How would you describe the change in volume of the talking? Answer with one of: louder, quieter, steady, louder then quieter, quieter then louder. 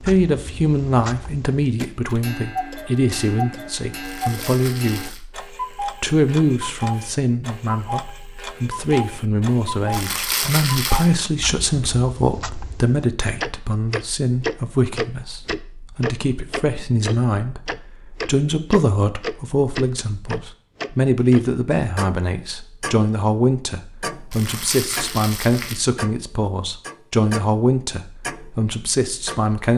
steady.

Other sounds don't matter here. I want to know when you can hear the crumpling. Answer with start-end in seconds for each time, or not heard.
4.0-5.2, 9.9-11.1, 24.3-25.8.